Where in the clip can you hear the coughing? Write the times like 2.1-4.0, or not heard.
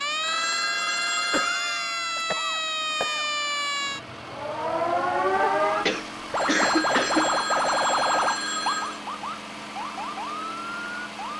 1.3-3.2, 5.8-7.3.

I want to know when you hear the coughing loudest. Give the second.
7 s.